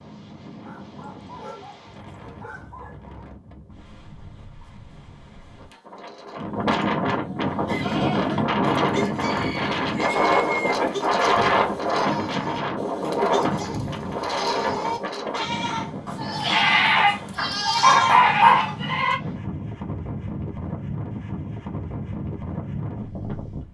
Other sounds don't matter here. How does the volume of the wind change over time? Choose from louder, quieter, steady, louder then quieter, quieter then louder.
louder then quieter.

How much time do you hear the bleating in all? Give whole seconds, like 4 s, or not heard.
12 s.